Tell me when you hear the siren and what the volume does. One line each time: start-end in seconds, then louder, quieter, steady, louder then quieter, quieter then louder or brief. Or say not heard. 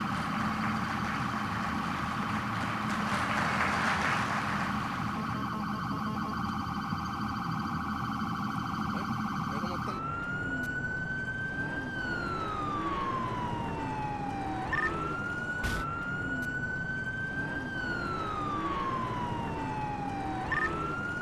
0.0-21.1 steady.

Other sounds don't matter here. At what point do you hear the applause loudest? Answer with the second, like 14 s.
4 s.